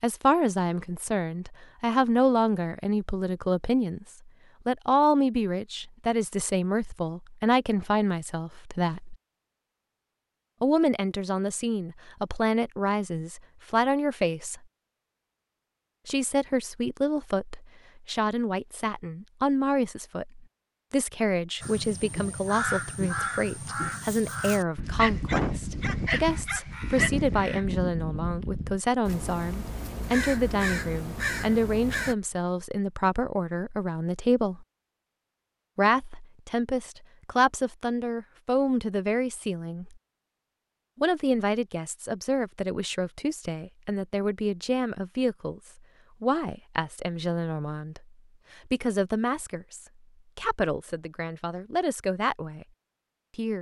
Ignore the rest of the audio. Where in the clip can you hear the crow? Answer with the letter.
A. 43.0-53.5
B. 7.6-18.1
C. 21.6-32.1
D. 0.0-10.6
C.